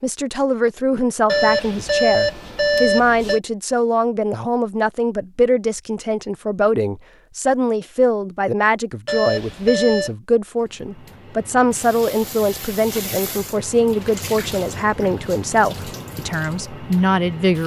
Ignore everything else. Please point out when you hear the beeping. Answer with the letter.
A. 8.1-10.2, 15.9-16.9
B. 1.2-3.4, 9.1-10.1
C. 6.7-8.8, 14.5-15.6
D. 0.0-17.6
B.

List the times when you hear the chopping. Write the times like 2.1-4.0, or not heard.
not heard.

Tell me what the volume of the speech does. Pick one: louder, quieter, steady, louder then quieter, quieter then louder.
steady.